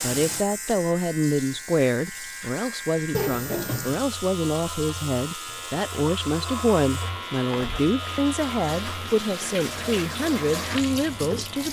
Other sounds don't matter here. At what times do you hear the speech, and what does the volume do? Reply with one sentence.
You can hear the speech from 0.0 to 11.6 s, at a steady volume.